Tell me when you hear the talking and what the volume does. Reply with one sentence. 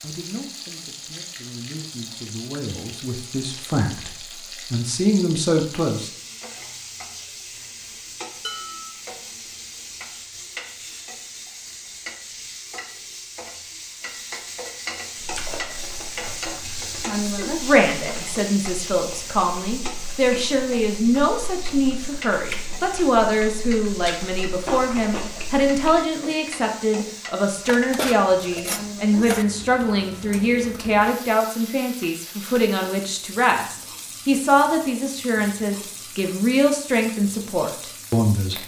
You can hear the talking from 0.0 to 6.1 s, getting louder; and from 17.2 to 38.6 s, at a steady volume.